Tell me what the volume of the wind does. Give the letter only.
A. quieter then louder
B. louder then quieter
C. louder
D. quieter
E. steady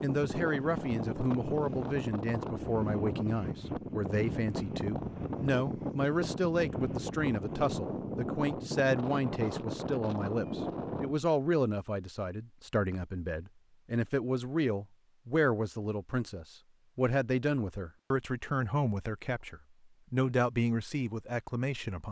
E.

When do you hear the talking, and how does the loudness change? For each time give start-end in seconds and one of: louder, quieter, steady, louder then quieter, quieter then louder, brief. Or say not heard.
0.0-22.0 steady.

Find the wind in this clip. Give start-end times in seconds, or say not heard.
0.0-11.2.